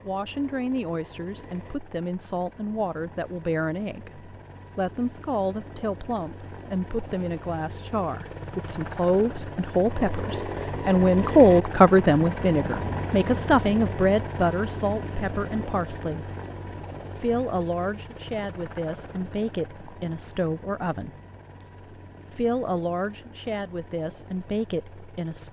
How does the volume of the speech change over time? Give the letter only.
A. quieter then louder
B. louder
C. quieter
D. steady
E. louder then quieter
E.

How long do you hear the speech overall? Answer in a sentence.
You can hear the speech for 23 seconds altogether.